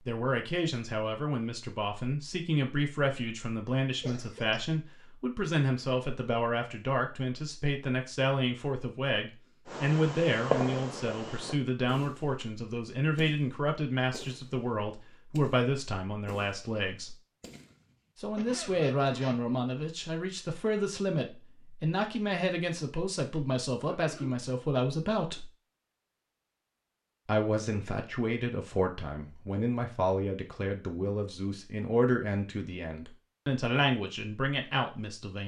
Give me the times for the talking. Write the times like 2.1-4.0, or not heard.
0.1-17.1, 18.1-25.5, 27.2-35.4.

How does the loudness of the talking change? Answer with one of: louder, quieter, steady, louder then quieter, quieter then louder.
steady.